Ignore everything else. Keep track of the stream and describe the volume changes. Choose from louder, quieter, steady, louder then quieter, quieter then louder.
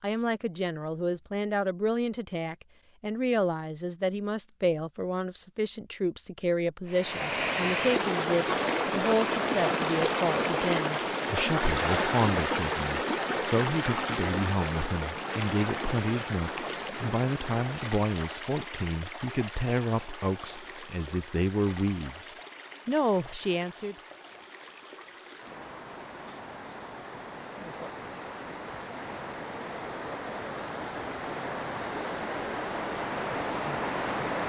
quieter then louder.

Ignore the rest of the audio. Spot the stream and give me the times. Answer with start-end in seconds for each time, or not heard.
6.8-34.4.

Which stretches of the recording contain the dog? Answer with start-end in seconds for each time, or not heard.
not heard.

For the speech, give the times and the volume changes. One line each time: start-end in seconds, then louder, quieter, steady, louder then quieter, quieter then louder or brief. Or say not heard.
0.0-23.9 steady.